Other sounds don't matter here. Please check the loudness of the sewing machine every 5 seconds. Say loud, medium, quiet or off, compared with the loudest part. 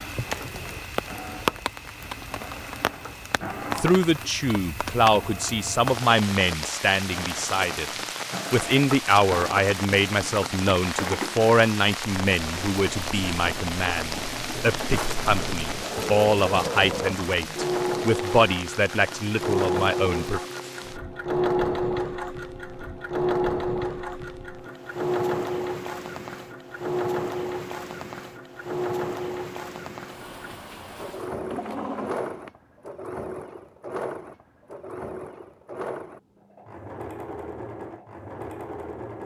medium, medium, medium, loud, loud, loud, medium, medium.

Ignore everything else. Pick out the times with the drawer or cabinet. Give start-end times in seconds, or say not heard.
0.1-0.9, 14.9-15.4, 31.4-32.5.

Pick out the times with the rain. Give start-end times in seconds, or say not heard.
0.0-31.4.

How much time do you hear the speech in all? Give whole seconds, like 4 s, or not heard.
16 s.